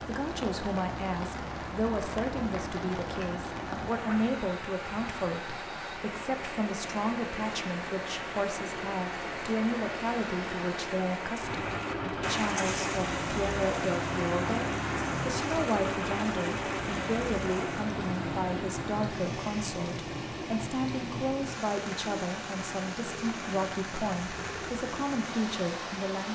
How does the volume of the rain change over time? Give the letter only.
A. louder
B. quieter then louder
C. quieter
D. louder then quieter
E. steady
E.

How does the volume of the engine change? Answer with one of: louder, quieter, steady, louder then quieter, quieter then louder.
louder then quieter.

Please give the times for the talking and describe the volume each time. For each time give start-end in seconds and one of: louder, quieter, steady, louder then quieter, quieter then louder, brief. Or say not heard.
0.0-26.2 steady.